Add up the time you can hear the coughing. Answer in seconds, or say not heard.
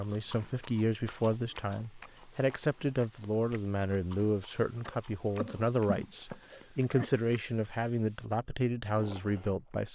2 s.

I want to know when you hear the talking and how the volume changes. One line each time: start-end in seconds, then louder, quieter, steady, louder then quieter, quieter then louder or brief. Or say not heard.
0.0-9.9 steady.